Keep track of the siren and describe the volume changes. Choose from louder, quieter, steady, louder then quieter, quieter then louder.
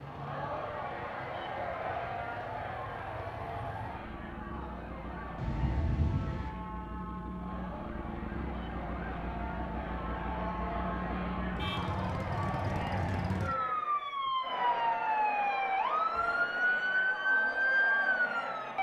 louder.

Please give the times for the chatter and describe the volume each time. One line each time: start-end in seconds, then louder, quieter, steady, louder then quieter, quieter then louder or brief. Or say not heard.
0.0-18.7 quieter then louder.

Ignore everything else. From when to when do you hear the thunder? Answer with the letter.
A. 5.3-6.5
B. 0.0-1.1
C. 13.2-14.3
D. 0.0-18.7
A.